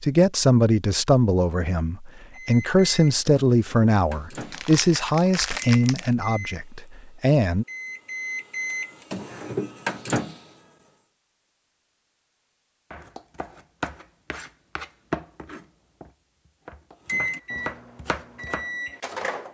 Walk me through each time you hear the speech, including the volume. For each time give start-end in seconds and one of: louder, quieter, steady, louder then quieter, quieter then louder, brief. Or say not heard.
0.0-7.7 quieter.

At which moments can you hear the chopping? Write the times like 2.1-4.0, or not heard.
12.9-18.9.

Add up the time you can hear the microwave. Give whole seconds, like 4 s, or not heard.
11 s.